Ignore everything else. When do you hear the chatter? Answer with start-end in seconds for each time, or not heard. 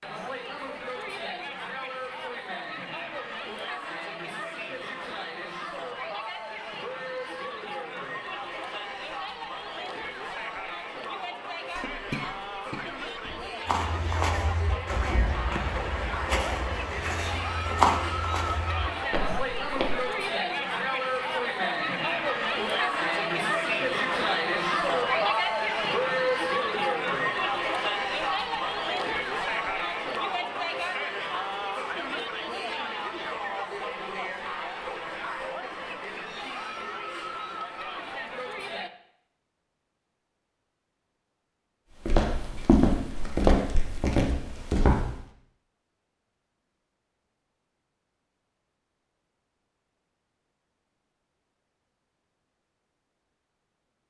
0.0-38.9.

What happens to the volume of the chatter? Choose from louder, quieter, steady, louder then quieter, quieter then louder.
louder then quieter.